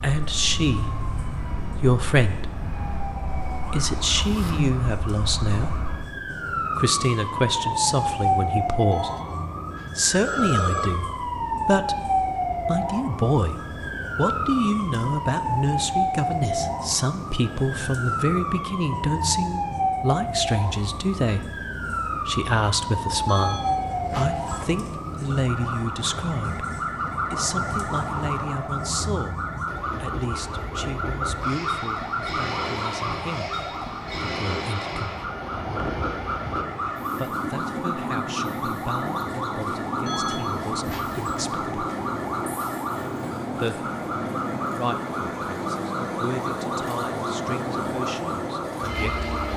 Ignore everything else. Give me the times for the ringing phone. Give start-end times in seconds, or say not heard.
8.9-10.9, 23.2-24.6, 40.0-41.2.